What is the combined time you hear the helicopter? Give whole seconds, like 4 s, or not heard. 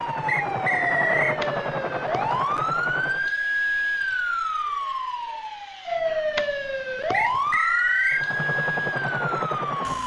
5 s.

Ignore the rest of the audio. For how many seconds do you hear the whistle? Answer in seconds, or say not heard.
2 s.